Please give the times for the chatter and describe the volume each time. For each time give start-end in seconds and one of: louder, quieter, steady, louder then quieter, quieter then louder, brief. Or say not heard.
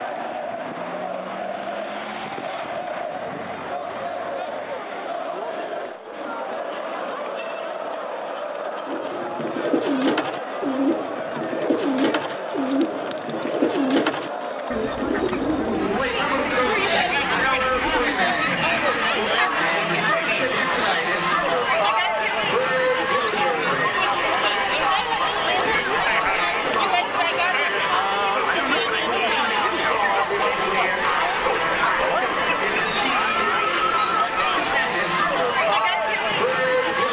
0.0-37.0 louder.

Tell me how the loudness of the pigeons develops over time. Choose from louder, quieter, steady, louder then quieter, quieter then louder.
quieter.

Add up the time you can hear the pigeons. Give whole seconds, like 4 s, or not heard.
10 s.